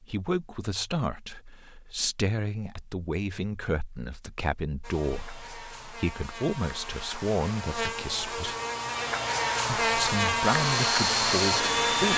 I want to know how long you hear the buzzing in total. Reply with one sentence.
The buzzing can be heard for 7 seconds in total.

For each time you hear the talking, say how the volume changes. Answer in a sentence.
You can hear the talking from 0.0 to 8.6 s, at a steady volume; and briefly from 9.8 to 12.1 s.